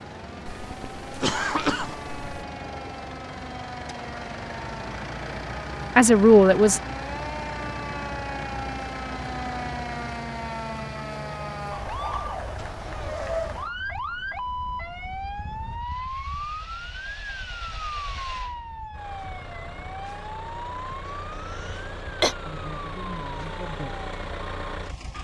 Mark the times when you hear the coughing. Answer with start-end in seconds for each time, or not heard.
0.5-2.4, 21.1-22.4.